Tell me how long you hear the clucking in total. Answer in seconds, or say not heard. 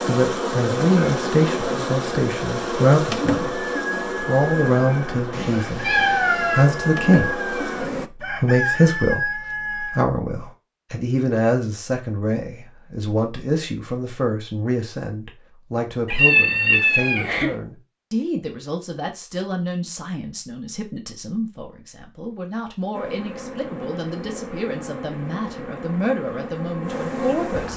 7 s.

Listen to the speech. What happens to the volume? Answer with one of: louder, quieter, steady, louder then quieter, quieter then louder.
quieter.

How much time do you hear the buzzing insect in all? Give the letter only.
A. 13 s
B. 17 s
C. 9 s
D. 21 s
A.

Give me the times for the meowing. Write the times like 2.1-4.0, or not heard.
5.3-6.7, 16.1-17.6.